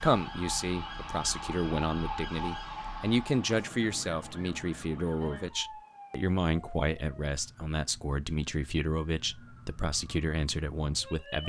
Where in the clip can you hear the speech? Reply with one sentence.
You can hear the speech from 0.0 to 11.4 s.